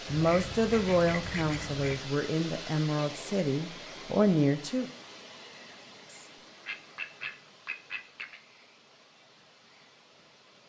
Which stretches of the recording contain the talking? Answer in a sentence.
You can hear the talking from 0.1 to 4.9 s.